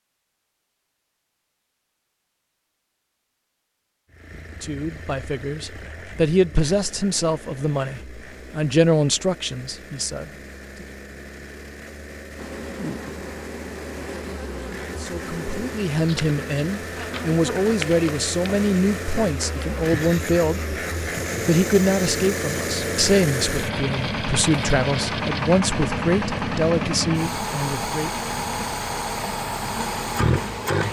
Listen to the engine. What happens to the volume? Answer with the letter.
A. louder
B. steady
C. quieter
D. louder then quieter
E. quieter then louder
A.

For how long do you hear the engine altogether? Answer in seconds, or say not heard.
27 s.